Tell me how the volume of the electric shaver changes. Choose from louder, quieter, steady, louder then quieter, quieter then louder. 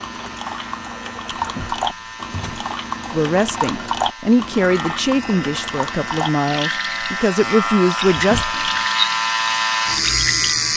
louder.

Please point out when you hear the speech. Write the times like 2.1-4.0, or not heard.
3.1-8.4.